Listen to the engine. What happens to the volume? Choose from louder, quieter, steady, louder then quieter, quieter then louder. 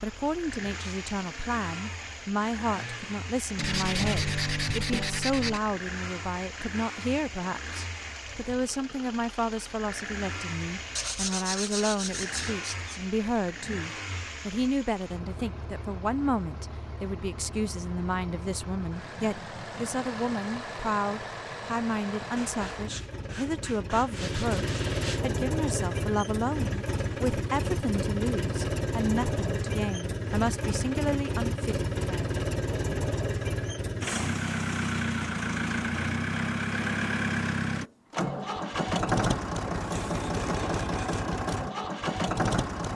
louder.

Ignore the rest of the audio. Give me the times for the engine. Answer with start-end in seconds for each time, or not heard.
0.0-42.9.